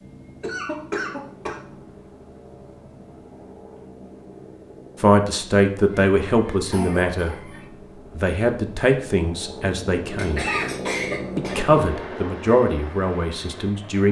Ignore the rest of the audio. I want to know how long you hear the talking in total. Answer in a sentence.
The talking can be heard for 7 seconds in total.